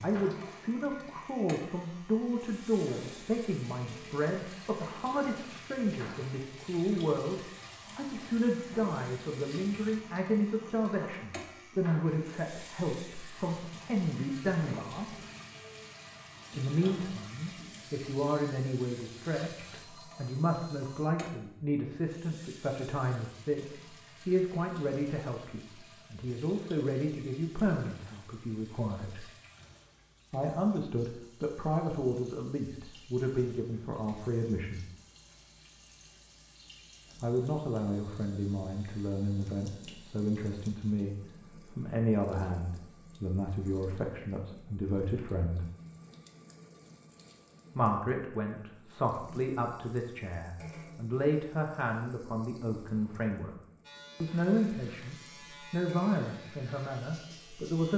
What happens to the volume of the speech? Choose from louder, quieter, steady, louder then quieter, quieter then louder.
steady.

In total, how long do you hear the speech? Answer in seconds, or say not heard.
50 s.